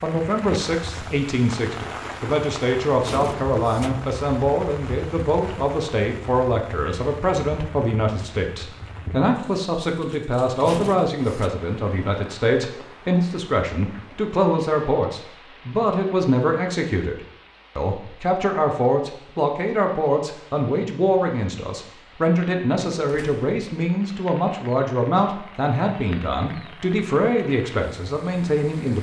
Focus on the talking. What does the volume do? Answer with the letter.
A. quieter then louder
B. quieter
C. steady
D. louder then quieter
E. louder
C.